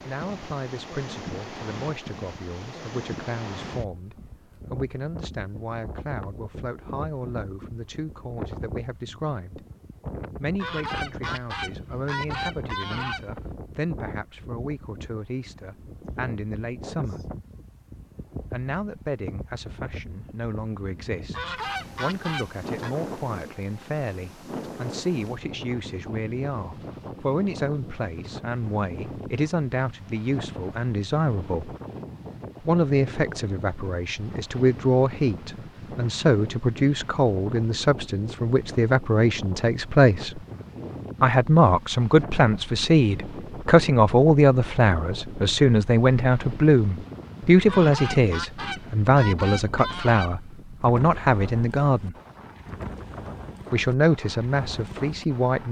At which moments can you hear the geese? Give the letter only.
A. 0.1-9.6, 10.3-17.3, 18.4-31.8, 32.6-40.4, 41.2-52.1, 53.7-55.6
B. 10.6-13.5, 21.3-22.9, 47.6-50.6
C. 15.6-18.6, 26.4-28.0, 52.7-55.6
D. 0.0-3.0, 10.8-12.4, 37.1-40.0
B.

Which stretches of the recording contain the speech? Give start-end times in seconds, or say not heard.
0.1-9.6, 10.3-17.3, 18.4-31.8, 32.6-40.4, 41.2-52.1, 53.7-55.6.